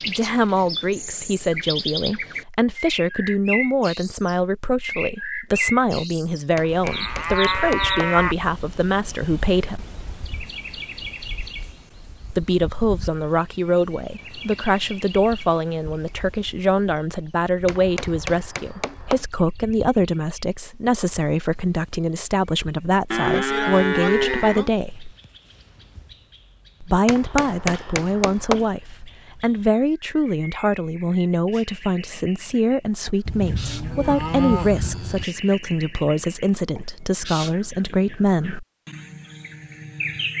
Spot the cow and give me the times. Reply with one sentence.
The cow can be heard from 6.8 to 8.3 s, from 23.1 to 24.7 s and from 33.2 to 35.2 s.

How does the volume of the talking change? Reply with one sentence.
The loudness of the talking stays about the same.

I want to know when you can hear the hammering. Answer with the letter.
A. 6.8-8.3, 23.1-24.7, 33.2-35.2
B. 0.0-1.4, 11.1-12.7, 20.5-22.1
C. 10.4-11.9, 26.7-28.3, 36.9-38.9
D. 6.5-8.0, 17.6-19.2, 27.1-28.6
D.